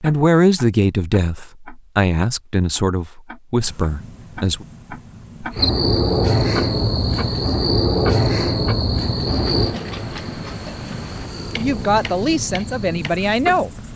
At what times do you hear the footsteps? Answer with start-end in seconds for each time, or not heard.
not heard.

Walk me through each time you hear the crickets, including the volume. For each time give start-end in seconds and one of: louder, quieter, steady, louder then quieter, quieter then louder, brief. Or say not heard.
5.5-13.9 quieter.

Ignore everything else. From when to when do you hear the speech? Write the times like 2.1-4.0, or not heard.
0.0-4.7, 11.6-13.7.